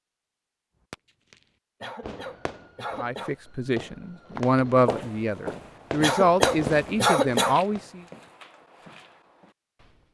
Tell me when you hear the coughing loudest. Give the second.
7 s.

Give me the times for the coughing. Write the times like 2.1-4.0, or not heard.
1.8-3.4, 6.0-7.5.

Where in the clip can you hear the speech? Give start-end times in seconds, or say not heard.
3.0-8.0.